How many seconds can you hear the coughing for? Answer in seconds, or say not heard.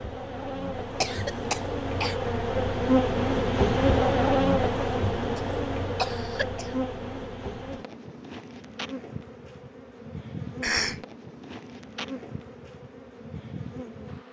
3 s.